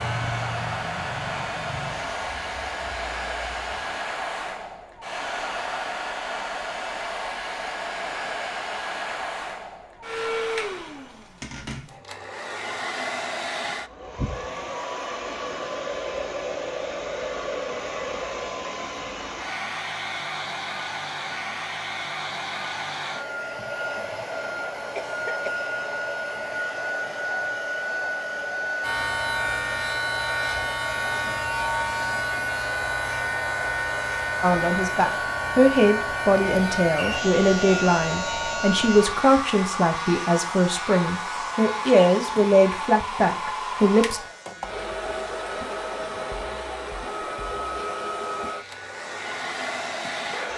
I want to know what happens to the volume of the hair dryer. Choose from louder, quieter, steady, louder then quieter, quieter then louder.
steady.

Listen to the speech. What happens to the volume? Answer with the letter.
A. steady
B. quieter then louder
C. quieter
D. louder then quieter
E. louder
A.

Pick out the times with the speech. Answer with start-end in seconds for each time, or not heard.
34.4-44.2.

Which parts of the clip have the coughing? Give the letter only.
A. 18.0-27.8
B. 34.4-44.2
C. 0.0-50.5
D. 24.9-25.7
D.